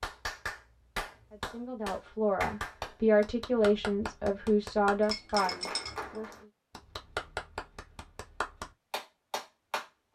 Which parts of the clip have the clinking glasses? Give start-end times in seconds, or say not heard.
5.0-6.0.